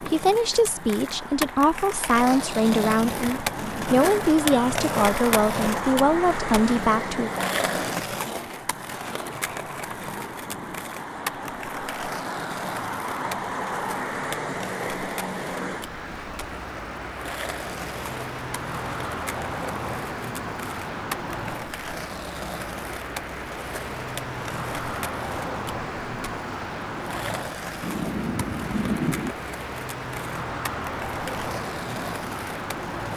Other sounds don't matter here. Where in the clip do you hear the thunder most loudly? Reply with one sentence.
The loudest moment of the thunder is at 29 seconds.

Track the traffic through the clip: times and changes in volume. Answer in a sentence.
The traffic can be heard from 0.0 to 33.1 s, at a steady volume.